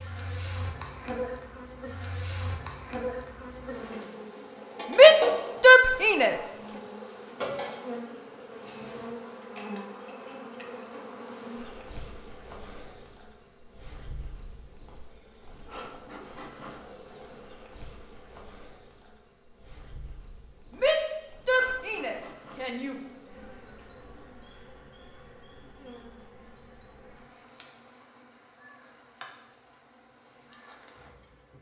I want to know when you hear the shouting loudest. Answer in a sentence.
The loudest moment of the shouting is at 5 seconds.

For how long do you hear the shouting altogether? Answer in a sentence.
The shouting can be heard for 4 seconds in total.